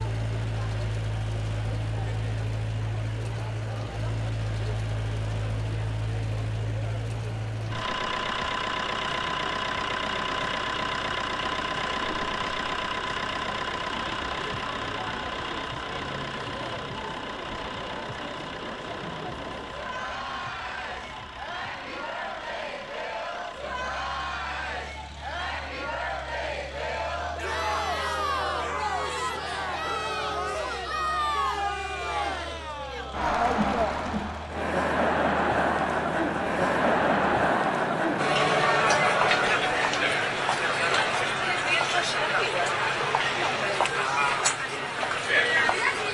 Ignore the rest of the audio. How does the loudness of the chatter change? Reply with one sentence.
The loudness of the chatter goes up.